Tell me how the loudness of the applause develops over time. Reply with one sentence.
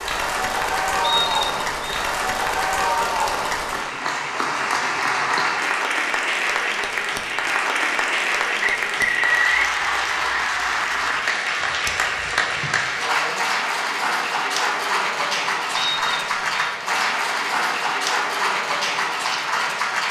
The volume of the applause stays about the same.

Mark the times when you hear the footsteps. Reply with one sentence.
You can't hear the footsteps here.